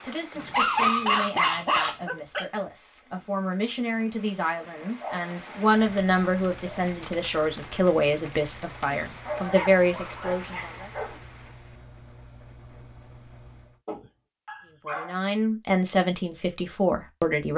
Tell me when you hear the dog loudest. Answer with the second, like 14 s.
1 s.